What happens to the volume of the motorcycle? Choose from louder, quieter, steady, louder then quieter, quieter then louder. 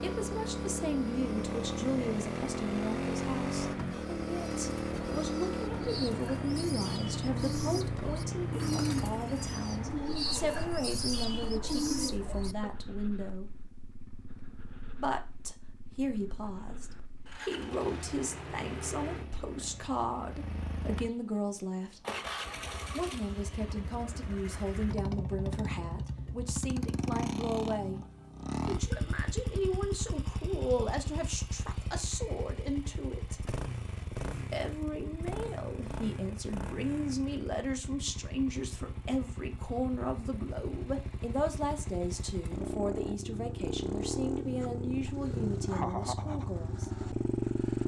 quieter then louder.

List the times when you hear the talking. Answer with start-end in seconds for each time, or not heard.
0.0-13.5, 14.9-22.0, 22.9-33.4, 34.5-46.9.